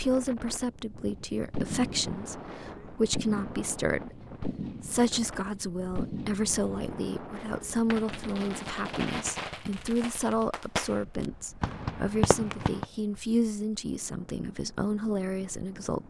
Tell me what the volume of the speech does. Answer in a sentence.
The loudness of the speech stays about the same.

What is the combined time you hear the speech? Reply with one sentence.
The speech can be heard for 16 seconds in total.